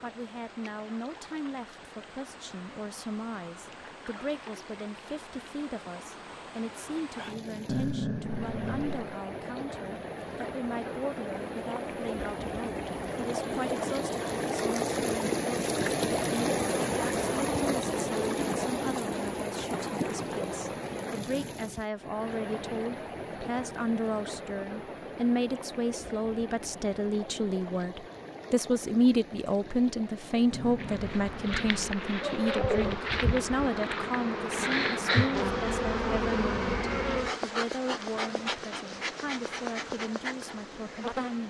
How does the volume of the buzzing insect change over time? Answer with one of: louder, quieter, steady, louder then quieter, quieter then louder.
louder then quieter.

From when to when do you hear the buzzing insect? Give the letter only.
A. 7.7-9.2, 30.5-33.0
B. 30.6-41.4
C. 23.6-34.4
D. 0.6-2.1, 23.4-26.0
B.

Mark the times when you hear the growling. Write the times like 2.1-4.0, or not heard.
7.7-9.2, 30.5-33.0.